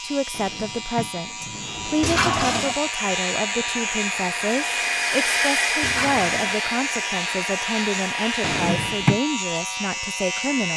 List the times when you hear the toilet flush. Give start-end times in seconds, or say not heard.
2.0-2.8, 5.8-6.6.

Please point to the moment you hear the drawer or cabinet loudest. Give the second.
9 s.